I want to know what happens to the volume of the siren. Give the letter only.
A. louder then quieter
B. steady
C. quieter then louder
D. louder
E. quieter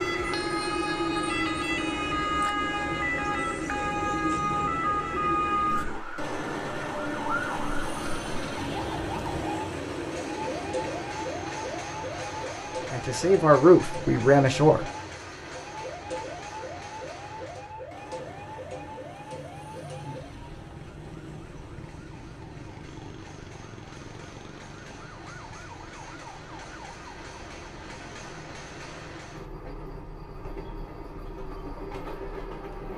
E.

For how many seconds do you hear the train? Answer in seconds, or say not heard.
33 s.